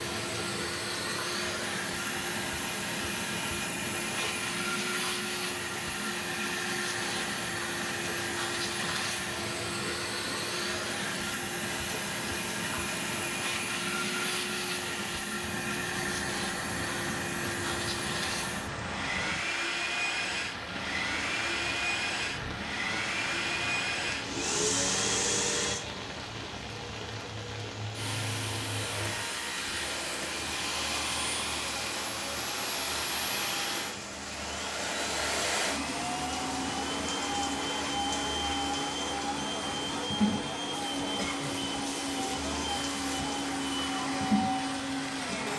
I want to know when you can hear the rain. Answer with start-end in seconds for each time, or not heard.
0.0-45.5.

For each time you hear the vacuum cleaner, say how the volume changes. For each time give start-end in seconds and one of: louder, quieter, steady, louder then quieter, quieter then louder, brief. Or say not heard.
0.0-45.5 steady.